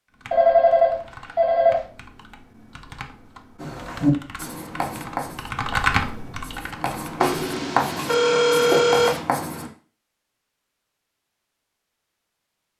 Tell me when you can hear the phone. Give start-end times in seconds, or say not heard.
0.3-1.8, 7.2-9.2.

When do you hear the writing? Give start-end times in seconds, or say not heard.
3.6-9.7.